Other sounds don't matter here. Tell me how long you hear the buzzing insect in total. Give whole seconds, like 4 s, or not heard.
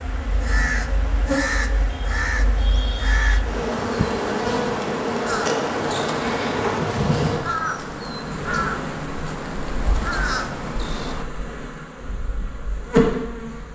14 s.